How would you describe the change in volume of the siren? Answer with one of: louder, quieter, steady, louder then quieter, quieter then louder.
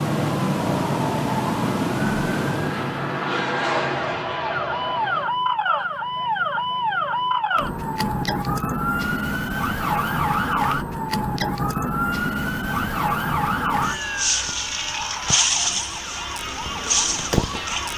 steady.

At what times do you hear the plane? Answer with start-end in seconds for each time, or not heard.
0.0-5.3.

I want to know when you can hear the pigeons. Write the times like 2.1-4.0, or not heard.
not heard.